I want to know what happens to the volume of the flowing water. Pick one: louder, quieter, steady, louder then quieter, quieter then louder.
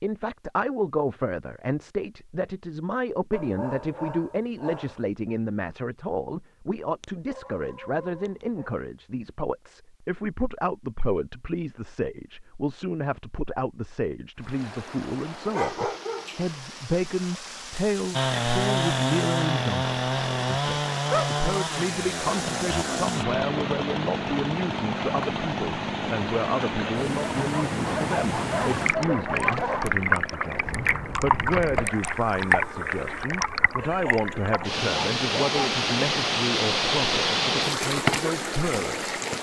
louder.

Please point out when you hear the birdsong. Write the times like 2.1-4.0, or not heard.
not heard.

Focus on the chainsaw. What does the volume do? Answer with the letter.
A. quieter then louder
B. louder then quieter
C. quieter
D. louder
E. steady
C.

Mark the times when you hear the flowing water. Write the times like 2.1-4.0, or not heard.
14.3-39.3.